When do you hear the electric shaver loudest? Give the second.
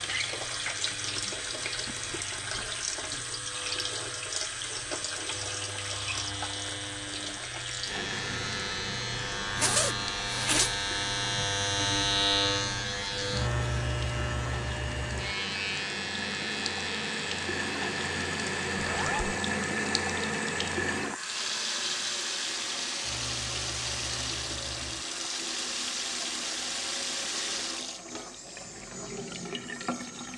12 s.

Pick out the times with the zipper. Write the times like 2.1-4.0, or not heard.
9.6-10.8, 18.8-19.4.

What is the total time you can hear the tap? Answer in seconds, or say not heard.
30 s.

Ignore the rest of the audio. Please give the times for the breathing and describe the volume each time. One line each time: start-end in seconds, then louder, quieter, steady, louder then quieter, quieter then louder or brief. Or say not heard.
not heard.